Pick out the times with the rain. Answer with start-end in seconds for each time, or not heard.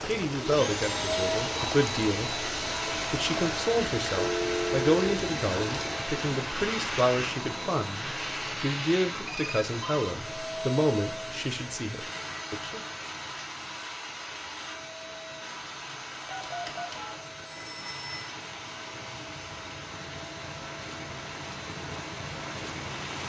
0.0-23.2.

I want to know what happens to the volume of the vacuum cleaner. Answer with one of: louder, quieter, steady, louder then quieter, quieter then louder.
quieter.